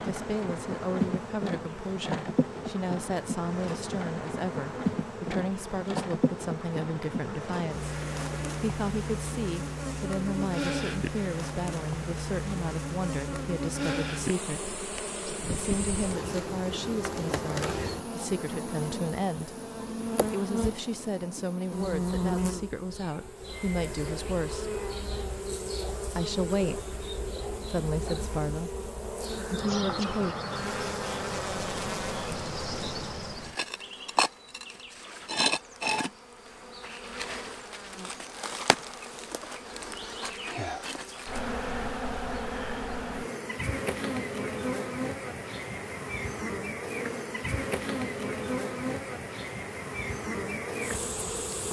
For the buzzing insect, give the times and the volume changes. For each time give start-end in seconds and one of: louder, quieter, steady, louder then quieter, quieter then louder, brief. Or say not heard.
0.0-51.6 steady.